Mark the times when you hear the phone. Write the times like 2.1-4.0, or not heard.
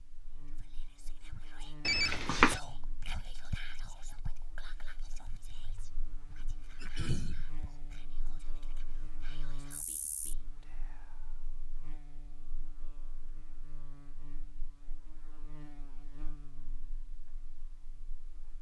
1.9-2.6.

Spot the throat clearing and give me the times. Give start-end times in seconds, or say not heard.
6.8-7.5.